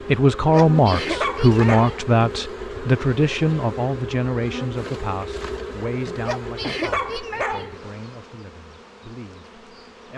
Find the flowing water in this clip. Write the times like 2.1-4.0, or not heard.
not heard.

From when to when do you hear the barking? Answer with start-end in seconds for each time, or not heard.
0.5-2.0, 6.2-7.8.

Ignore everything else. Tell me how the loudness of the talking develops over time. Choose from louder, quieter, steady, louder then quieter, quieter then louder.
quieter.